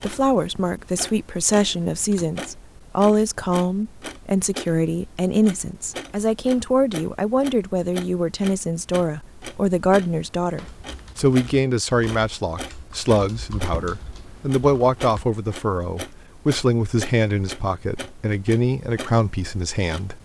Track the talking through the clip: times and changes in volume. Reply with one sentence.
The talking can be heard from 0.0 to 20.1 s, at a steady volume.